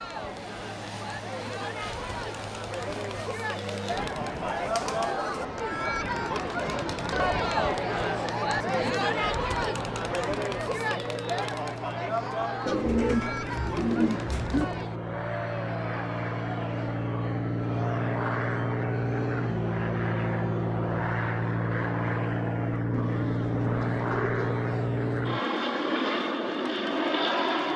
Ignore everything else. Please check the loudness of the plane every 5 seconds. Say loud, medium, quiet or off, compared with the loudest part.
quiet, quiet, medium, loud, loud, loud.